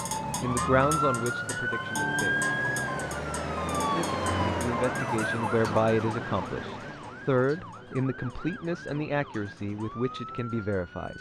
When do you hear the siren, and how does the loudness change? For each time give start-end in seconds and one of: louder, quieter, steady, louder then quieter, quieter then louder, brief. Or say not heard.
0.0-11.1 quieter.